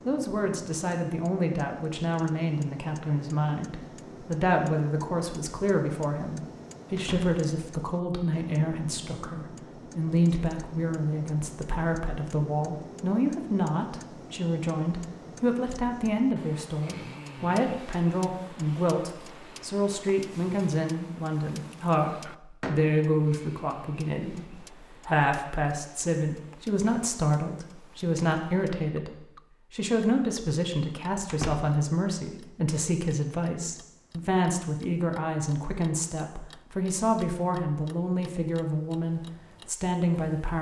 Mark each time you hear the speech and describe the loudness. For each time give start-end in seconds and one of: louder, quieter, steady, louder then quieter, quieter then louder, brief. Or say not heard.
0.0-40.5 steady.